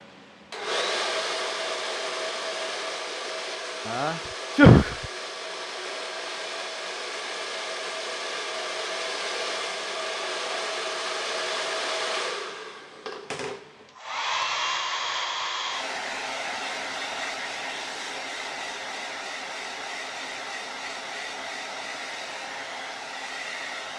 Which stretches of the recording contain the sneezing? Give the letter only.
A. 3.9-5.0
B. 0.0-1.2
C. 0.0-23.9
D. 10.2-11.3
A.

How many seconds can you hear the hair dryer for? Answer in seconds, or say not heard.
24 s.